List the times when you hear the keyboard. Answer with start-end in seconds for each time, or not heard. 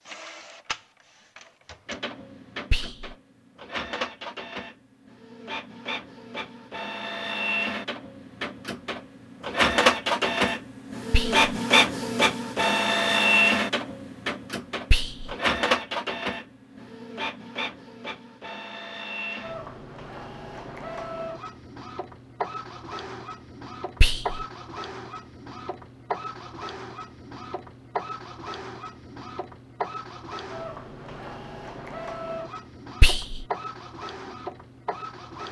not heard.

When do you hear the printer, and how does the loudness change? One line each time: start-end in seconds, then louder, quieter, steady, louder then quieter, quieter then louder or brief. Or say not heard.
0.0-35.4 louder then quieter.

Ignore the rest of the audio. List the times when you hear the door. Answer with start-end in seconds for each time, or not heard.
not heard.